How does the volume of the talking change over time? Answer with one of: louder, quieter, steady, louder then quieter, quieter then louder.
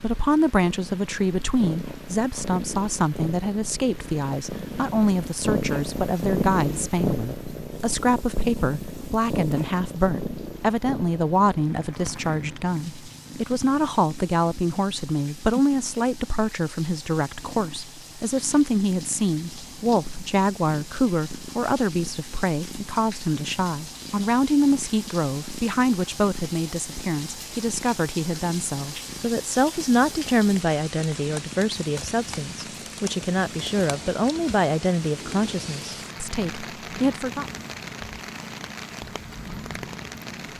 steady.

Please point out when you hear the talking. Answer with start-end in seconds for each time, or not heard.
0.0-37.5.